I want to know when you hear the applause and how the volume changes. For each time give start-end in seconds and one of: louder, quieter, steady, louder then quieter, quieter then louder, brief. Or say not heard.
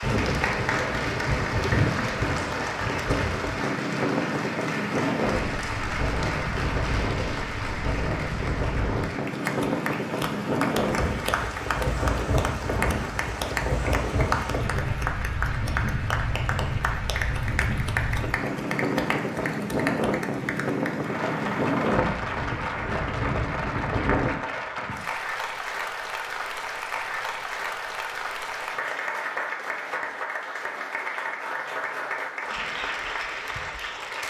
0.0-34.2 steady.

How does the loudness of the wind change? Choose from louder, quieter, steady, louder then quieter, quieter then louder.
steady.